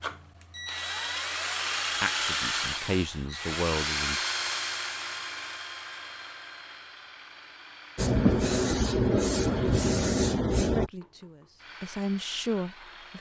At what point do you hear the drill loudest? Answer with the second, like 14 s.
2 s.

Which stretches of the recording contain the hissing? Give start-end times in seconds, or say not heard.
8.0-10.9.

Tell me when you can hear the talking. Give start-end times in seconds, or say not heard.
2.0-4.2, 10.7-13.1.